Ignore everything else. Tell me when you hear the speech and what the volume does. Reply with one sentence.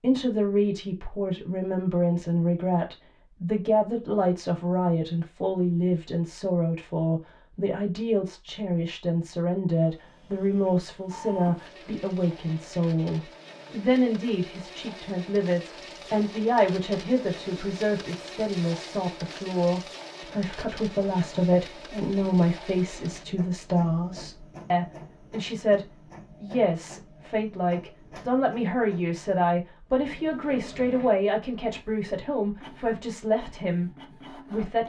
You can hear the speech from 0.0 to 34.8 s, at a steady volume.